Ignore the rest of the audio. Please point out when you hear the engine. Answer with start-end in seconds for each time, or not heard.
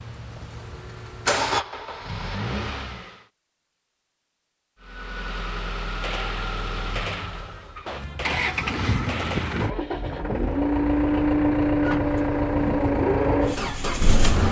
0.0-3.2, 4.8-14.4.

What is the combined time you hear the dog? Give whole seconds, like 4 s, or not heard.
not heard.